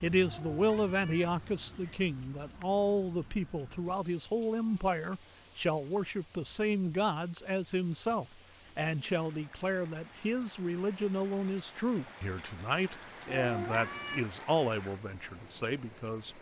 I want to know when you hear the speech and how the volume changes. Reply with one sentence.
The speech can be heard from 0.0 to 16.3 s, at a steady volume.